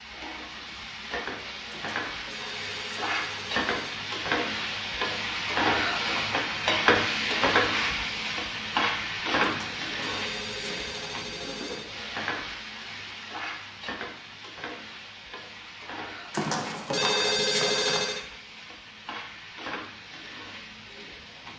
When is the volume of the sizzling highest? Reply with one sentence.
The volume of the sizzling peaks at 7 seconds.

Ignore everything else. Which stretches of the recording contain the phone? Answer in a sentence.
The phone can be heard from 1.7 to 4.0 s, from 9.4 to 11.9 s and from 16.3 to 18.2 s.